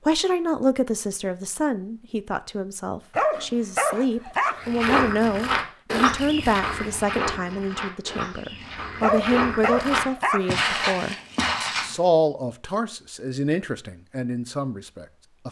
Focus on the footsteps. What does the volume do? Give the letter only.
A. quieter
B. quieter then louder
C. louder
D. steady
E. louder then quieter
B.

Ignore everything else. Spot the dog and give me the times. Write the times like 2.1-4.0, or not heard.
3.1-4.8, 9.0-10.6.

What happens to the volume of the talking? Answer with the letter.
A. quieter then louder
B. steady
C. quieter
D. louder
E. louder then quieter
B.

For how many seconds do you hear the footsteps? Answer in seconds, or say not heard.
7 s.